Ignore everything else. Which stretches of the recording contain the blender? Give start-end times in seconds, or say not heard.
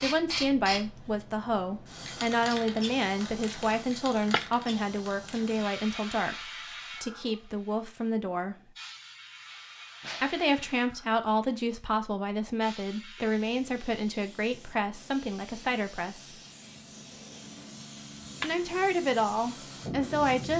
not heard.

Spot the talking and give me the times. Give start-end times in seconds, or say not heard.
0.0-8.7, 10.2-16.4, 18.4-20.5.